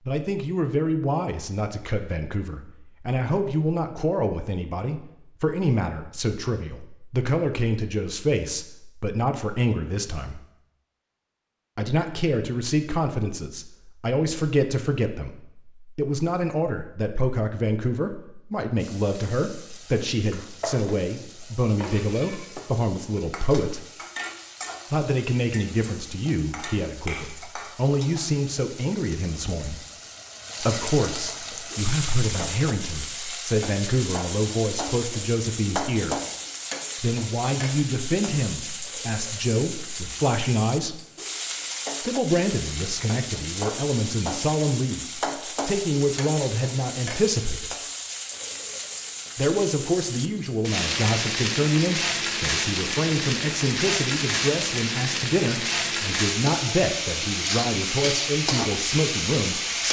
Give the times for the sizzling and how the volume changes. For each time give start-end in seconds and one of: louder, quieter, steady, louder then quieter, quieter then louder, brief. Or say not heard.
18.8-59.8 louder.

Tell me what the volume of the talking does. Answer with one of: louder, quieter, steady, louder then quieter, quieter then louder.
steady.